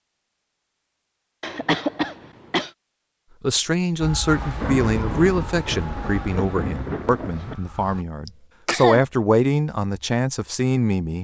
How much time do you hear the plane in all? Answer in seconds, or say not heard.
not heard.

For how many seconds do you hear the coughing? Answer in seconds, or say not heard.
2 s.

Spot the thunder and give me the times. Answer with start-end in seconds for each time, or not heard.
4.2-7.5.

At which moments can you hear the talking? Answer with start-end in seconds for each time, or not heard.
3.4-11.1.